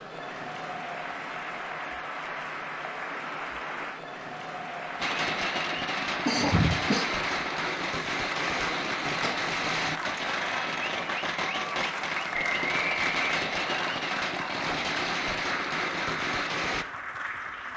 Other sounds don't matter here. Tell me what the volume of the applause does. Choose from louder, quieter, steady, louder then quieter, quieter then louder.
steady.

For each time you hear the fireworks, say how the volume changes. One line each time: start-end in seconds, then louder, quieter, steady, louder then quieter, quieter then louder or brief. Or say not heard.
5.0-16.9 steady.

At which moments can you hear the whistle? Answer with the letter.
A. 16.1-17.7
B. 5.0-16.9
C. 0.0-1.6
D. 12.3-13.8
D.